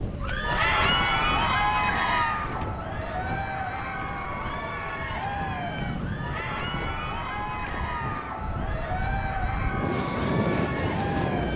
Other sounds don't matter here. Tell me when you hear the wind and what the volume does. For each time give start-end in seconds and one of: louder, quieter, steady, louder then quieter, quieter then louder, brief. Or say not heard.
0.0-11.5 quieter then louder.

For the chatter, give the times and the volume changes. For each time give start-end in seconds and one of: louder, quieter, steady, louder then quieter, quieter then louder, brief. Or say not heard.
0.1-11.5 quieter.